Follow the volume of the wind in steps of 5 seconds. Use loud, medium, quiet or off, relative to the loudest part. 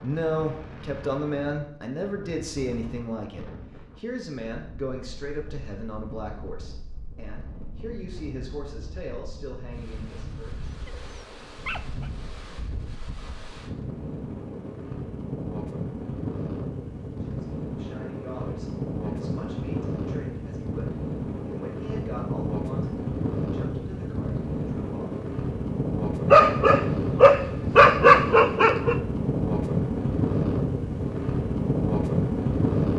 quiet, quiet, quiet, medium, medium, loud, loud.